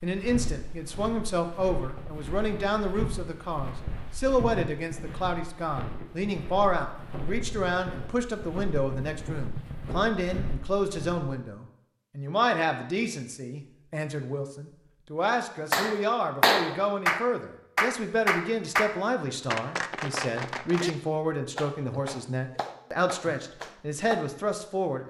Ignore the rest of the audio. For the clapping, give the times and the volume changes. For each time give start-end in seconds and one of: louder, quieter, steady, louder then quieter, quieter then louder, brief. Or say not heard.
15.7-20.9 quieter
21.6-24.2 brief.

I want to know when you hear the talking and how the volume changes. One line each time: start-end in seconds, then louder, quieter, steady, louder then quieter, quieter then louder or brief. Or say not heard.
0.0-25.0 steady.